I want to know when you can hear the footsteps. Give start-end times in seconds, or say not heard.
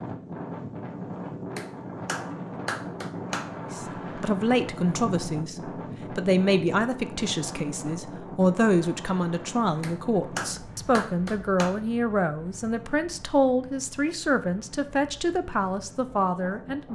not heard.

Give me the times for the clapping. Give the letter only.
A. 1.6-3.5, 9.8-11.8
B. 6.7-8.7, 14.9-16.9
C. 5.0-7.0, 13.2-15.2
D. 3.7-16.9
A.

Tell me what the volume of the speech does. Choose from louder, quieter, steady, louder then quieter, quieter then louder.
steady.